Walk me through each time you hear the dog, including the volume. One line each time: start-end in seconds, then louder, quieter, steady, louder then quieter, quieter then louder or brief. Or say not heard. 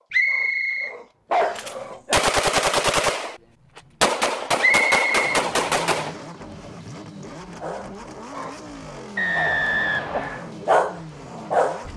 0.2-2.1 brief
7.6-11.8 louder.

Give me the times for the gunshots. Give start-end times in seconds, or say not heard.
1.6-6.2.